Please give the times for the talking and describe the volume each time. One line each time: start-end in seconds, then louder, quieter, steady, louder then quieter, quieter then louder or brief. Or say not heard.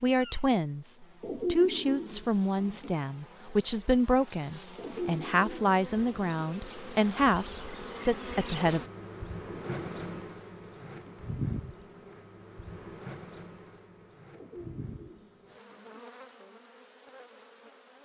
0.0-8.8 steady.